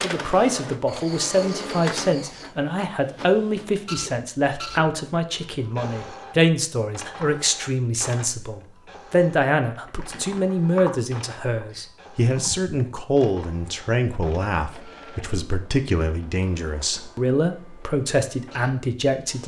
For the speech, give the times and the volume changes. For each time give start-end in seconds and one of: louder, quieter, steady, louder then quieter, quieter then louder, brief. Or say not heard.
0.0-19.4 steady.